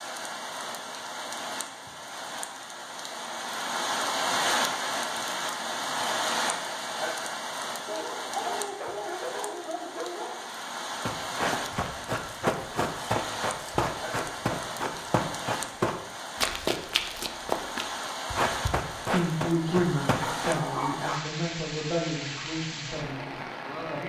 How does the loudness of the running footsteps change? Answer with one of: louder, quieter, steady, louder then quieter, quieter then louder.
steady.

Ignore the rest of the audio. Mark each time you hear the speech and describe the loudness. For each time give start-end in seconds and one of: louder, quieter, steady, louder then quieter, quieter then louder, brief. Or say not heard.
19.1-24.0 quieter.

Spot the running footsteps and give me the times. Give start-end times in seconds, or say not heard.
11.1-20.6.